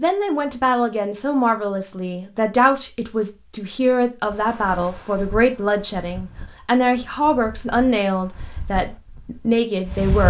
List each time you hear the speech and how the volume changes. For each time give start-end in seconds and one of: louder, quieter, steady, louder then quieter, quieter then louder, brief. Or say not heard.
0.0-10.2 steady.